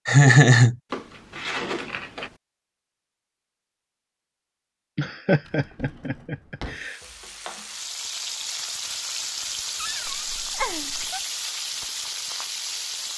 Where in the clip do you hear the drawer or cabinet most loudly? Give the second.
2 s.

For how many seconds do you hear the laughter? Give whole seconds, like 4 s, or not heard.
4 s.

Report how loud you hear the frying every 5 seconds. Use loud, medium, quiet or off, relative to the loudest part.
off, loud, loud.